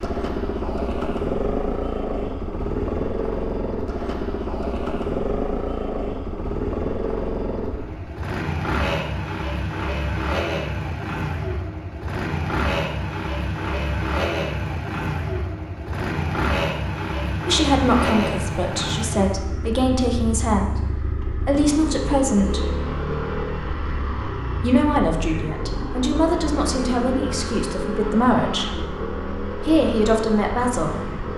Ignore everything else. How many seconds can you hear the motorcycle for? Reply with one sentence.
The motorcycle can be heard for 31 seconds in total.